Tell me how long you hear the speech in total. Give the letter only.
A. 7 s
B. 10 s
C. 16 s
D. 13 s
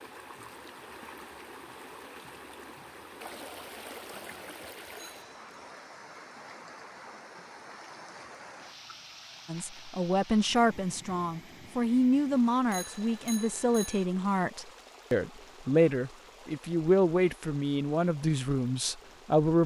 B.